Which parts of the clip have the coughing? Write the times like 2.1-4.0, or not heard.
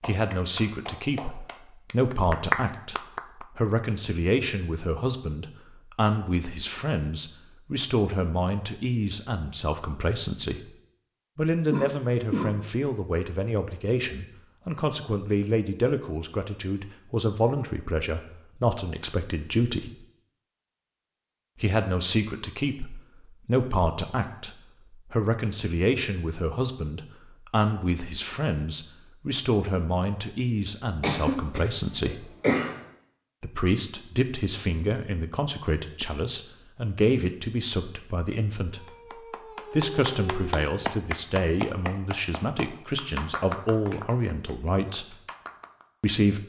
11.7-12.6, 31.0-32.8.